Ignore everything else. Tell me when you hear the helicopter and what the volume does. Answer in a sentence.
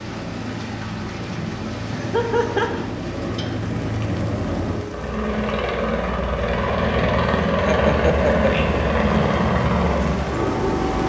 The helicopter can be heard from 0.0 to 11.0 s, getting louder.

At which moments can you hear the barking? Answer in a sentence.
You can't hear the barking here.